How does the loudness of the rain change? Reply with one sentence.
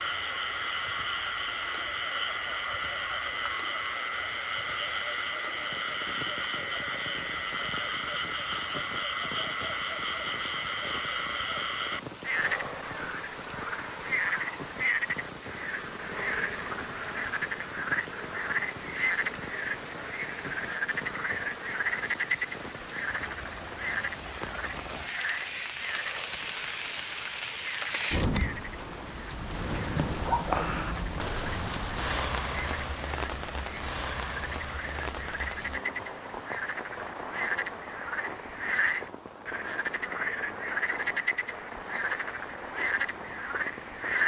The volume of the rain goes up, then down.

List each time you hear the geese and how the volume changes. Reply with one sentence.
The geese can't be heard in this clip.